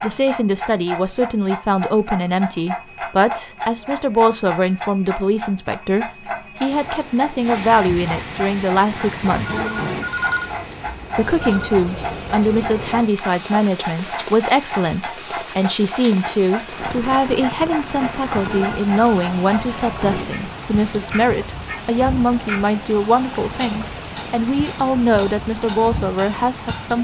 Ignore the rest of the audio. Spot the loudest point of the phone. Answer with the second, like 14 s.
10 s.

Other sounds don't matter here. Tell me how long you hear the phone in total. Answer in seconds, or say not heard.
3 s.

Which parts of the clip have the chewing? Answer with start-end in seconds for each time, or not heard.
not heard.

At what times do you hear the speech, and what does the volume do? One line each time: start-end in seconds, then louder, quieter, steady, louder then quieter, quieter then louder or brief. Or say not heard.
0.0-9.6 steady
11.2-26.9 steady.